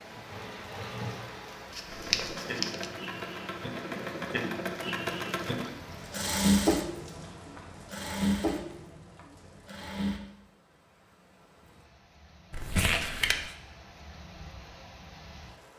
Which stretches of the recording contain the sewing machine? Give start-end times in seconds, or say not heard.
0.0-10.2.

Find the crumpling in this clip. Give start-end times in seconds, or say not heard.
1.8-2.9, 12.5-13.6.